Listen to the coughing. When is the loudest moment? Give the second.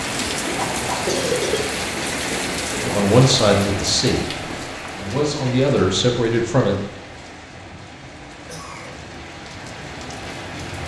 1 s.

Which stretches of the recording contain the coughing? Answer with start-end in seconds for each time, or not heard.
0.5-1.6, 8.3-8.9.